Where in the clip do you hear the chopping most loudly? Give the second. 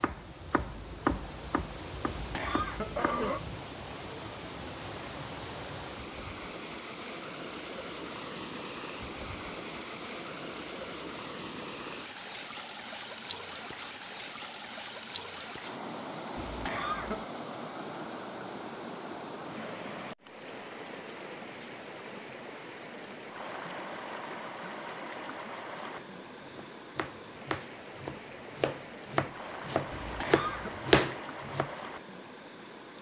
31 s.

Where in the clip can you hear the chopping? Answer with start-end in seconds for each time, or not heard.
0.0-3.6, 25.9-31.8.